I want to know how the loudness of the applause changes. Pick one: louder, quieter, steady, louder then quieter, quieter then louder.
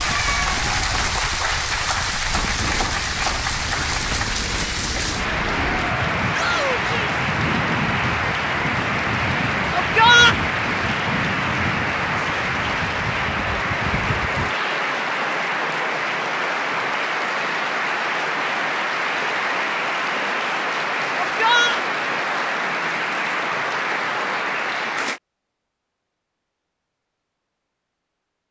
steady.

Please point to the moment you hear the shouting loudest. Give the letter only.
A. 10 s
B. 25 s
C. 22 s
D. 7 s
A.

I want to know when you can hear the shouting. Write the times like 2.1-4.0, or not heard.
6.3-7.2, 9.8-10.3, 21.2-21.8.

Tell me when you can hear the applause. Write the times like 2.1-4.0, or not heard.
0.0-25.2.